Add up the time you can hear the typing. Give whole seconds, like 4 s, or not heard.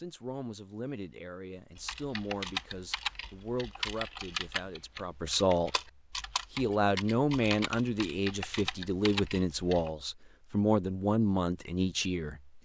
8 s.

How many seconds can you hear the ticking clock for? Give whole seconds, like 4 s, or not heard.
not heard.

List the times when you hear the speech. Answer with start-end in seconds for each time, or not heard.
0.0-5.7, 6.5-12.6.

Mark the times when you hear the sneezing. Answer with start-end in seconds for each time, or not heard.
not heard.